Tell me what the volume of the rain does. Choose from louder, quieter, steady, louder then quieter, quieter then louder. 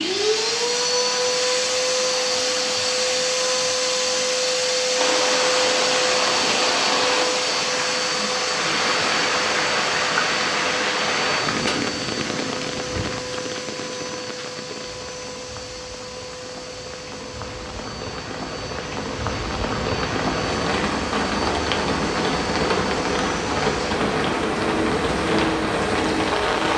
quieter then louder.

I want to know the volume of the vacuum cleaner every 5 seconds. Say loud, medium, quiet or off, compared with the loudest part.
loud, loud, medium, quiet, medium, medium.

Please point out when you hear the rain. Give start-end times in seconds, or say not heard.
4.9-26.7.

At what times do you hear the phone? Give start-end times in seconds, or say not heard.
not heard.